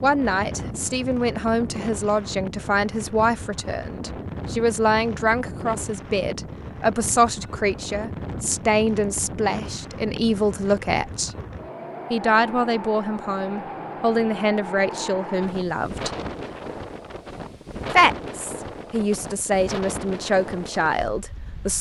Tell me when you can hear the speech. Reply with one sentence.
The speech can be heard from 0.0 to 11.3 s, from 12.1 to 16.1 s and from 17.9 to 21.7 s.